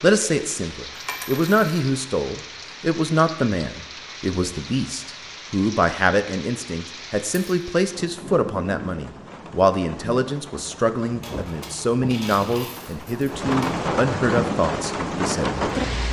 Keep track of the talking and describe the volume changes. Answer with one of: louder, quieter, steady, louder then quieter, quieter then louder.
steady.